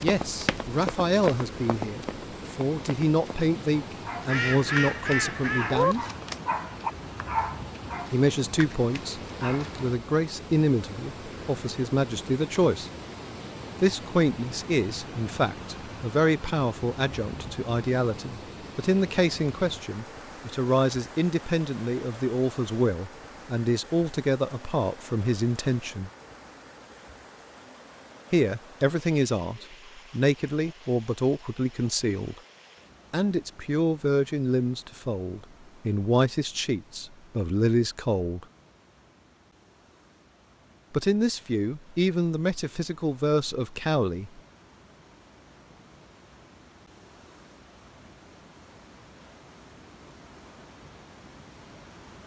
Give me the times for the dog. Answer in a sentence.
You can hear the dog from 3.9 to 9.8 s.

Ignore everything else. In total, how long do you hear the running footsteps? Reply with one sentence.
The running footsteps can be heard for 3 seconds in total.